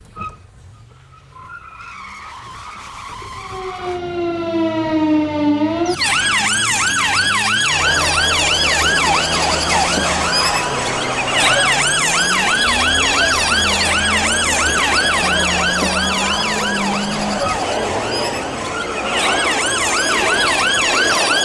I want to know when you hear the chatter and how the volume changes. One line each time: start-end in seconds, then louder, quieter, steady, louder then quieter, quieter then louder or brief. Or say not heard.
7.6-21.4 steady.